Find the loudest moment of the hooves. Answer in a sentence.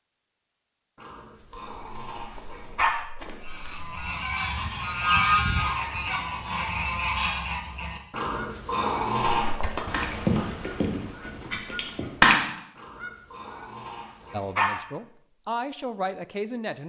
The loudest moment of the hooves is at 10 seconds.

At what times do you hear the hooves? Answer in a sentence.
You can hear the hooves from 1.4 to 4.0 s and from 9.3 to 12.4 s.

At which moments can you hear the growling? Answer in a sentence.
The growling can be heard from 1.0 to 2.9 s, from 8.1 to 9.7 s and from 12.8 to 14.7 s.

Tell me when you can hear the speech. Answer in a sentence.
You can hear the speech from 14.3 to 16.8 s.